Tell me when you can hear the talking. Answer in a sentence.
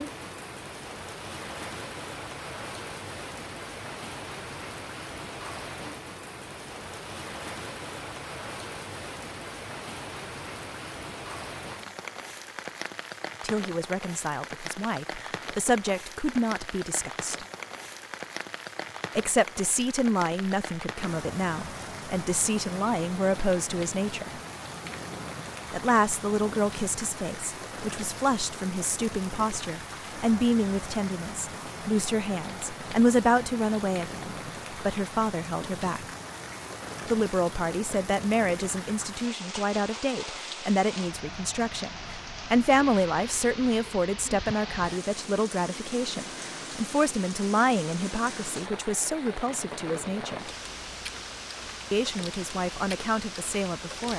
The talking can be heard from 13.4 to 17.4 s, from 19.1 to 24.4 s, from 25.7 to 36.0 s, from 37.0 to 50.5 s and from 51.9 to 54.1 s.